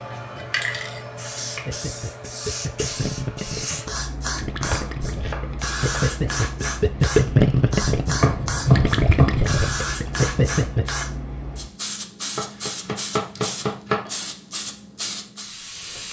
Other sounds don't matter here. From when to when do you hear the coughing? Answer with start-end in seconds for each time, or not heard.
not heard.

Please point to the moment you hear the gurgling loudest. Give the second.
7 s.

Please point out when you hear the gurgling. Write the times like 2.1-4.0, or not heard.
1.6-10.8.